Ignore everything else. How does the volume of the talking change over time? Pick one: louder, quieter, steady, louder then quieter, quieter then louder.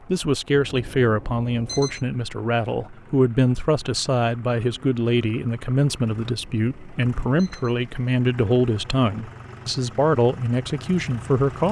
steady.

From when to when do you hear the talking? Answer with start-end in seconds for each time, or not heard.
0.1-11.6.